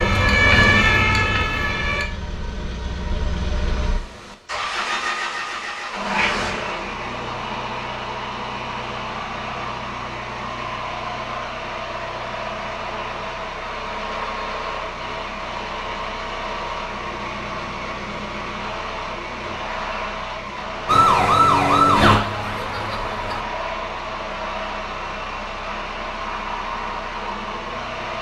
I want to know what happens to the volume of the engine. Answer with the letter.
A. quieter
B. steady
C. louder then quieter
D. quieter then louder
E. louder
B.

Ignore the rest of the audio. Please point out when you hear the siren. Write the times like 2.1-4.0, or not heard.
0.0-2.0, 20.9-23.4.